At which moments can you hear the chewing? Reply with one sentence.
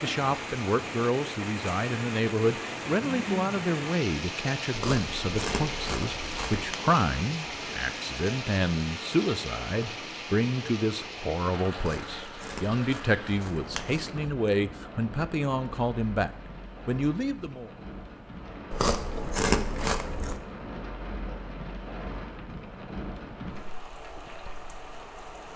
You can hear the chewing from 4.7 to 6.8 s, from 11.8 to 14.3 s and from 18.7 to 20.4 s.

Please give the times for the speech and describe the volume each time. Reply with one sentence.
The speech can be heard from 0.0 to 17.7 s, at a steady volume.